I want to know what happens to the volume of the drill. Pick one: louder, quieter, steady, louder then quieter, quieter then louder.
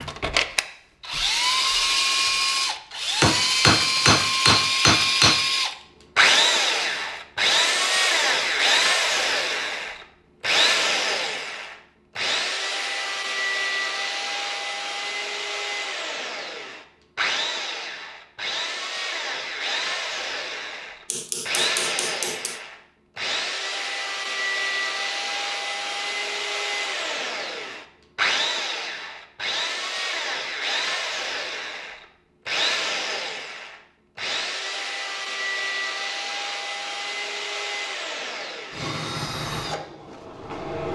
quieter.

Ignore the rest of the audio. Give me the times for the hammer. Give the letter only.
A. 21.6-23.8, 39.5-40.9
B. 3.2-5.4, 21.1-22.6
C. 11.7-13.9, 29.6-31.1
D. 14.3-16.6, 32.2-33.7
B.